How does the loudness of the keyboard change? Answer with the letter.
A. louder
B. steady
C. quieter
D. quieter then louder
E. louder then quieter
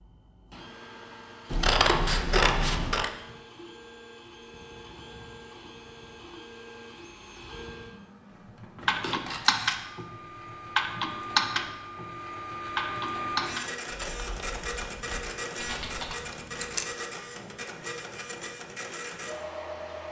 D.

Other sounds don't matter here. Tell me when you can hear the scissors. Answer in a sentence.
You can hear the scissors from 1.5 to 3.1 s, from 8.8 to 9.6 s and from 15.7 to 16.9 s.